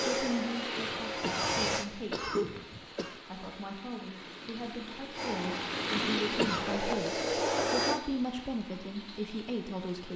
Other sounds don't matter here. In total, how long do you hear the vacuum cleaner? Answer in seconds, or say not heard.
5 s.